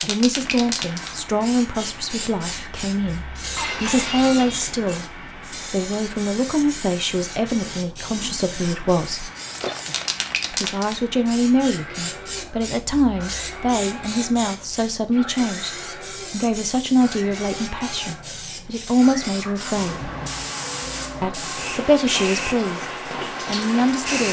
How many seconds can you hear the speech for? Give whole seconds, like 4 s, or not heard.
22 s.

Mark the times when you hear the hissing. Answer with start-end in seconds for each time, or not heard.
0.0-24.2.